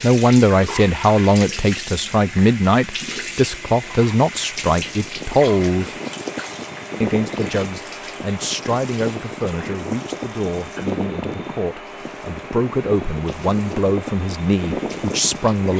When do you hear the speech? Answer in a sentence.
The speech can be heard from 0.0 to 5.9 s and from 7.0 to 15.7 s.